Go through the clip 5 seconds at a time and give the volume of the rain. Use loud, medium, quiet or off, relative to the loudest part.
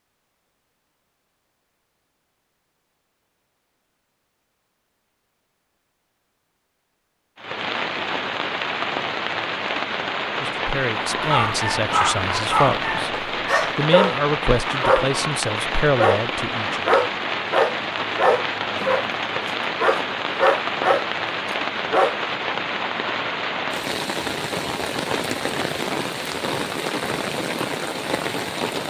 off, loud, loud, loud, loud, loud.